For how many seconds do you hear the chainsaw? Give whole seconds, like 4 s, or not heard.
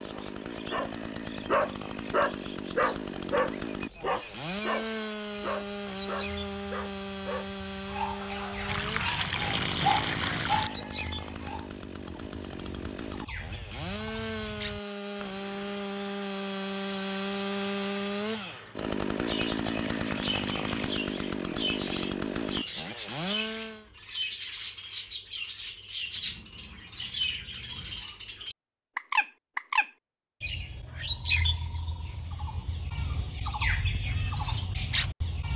24 s.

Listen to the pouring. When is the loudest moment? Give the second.
10 s.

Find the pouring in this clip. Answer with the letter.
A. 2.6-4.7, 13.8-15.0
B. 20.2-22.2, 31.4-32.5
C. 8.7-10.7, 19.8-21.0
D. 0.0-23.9
C.